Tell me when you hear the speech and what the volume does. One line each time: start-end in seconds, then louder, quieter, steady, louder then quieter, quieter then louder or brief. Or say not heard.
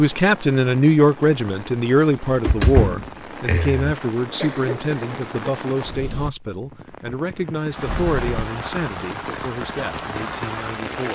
0.0-11.0 quieter.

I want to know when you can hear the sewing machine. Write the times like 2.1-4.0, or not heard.
not heard.